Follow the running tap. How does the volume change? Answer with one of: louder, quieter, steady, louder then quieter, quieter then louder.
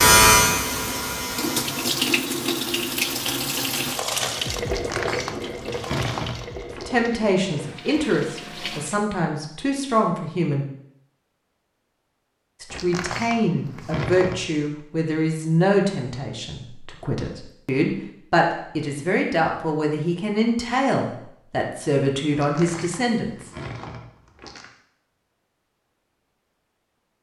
quieter.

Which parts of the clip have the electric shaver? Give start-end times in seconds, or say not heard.
0.0-1.9.